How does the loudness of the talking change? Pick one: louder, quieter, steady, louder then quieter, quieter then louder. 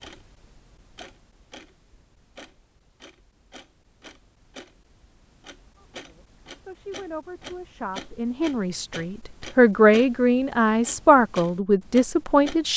louder.